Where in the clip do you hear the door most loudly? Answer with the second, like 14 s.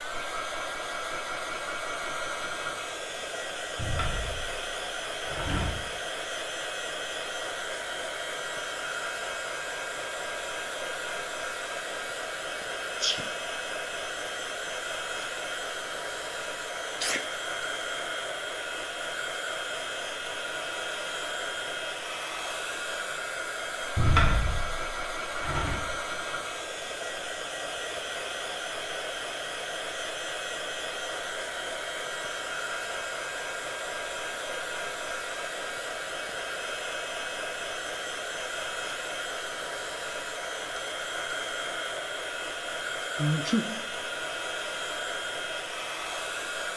24 s.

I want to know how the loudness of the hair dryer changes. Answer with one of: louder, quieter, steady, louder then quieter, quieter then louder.
steady.